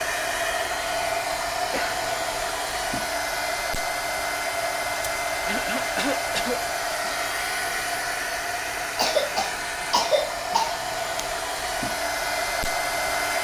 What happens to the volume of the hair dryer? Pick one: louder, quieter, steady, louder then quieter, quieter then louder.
steady.